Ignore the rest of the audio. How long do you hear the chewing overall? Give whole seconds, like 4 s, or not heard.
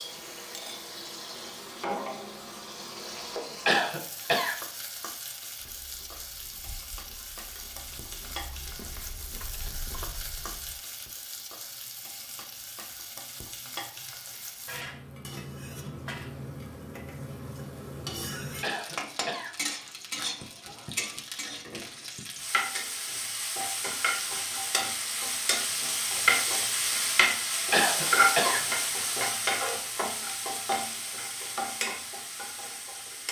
5 s.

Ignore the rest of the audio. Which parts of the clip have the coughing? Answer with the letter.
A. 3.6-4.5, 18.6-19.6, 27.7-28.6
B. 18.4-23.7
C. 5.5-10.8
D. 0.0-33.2
A.